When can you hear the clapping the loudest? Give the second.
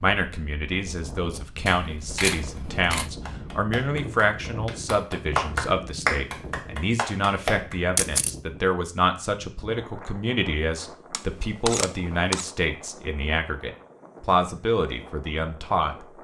6 s.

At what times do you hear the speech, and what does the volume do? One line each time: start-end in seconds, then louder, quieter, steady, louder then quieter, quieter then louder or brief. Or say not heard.
0.0-16.1 steady.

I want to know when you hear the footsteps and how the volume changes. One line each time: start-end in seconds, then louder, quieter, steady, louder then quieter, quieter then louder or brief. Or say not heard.
not heard.